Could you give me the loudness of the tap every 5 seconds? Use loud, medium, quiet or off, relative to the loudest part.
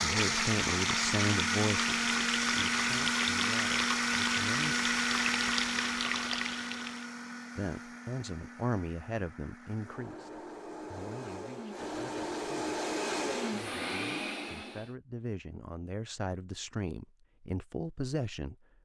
loud, loud, off, off.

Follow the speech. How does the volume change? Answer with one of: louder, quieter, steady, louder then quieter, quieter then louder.
quieter then louder.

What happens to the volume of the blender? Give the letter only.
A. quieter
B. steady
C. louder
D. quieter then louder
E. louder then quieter
D.